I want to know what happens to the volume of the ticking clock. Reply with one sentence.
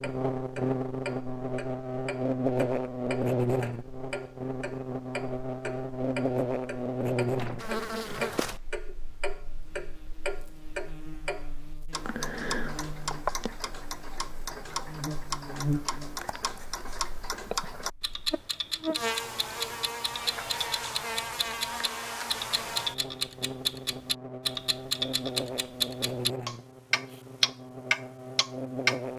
The loudness of the ticking clock goes up.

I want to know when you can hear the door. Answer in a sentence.
The door can be heard from 7.3 to 8.3 s.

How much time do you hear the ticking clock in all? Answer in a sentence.
You can hear the ticking clock for 29 seconds altogether.